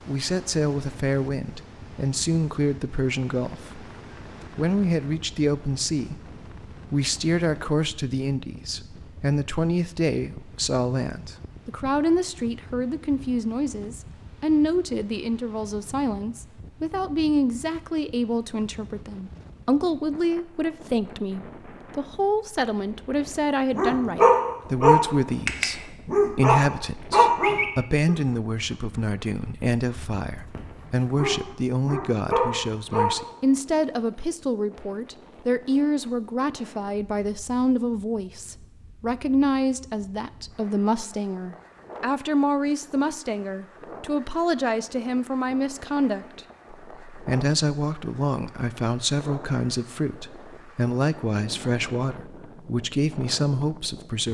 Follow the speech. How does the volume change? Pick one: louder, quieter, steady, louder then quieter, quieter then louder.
steady.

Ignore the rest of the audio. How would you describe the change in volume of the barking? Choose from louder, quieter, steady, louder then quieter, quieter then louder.
quieter then louder.